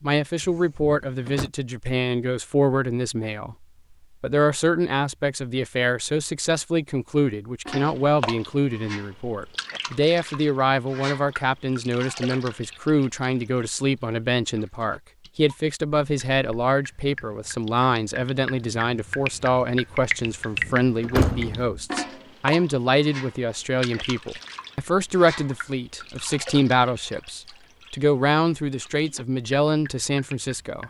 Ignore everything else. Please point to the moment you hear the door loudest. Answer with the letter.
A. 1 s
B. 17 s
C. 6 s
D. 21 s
D.